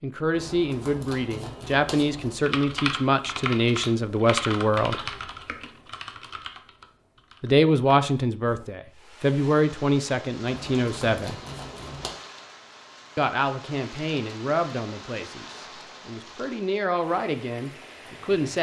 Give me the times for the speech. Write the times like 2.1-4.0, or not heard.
0.0-5.0, 7.4-11.4, 13.2-18.5.